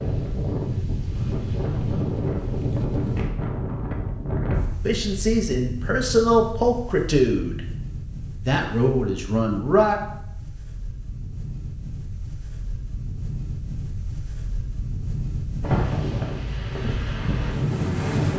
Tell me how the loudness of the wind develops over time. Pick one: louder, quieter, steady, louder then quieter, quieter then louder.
quieter then louder.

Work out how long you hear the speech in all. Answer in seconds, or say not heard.
4 s.